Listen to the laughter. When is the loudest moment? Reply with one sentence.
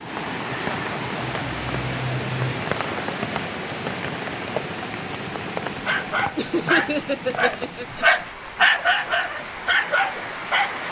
The loudest moment of the laughter is at 7 seconds.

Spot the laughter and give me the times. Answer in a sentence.
The laughter can be heard from 0.5 to 2.6 s and from 6.3 to 8.1 s.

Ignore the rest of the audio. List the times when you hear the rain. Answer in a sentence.
The rain can be heard from 0.0 to 10.8 s.